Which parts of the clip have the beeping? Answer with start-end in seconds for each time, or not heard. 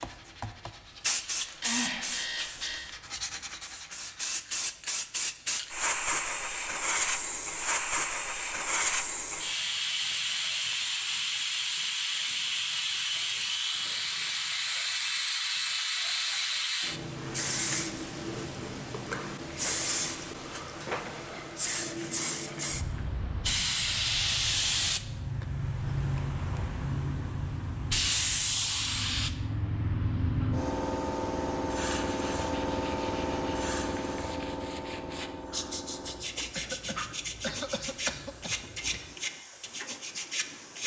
1.4-2.9.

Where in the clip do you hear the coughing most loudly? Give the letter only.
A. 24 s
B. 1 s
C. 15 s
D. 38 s
D.